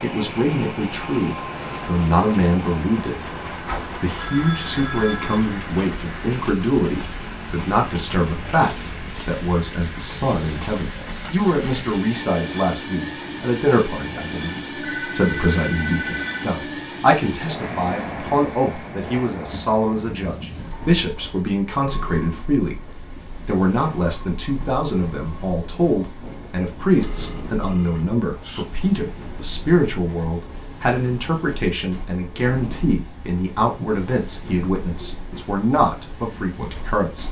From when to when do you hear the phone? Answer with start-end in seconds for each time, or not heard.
3.6-5.3, 14.8-16.5, 27.0-28.6.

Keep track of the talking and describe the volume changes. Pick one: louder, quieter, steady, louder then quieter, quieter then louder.
steady.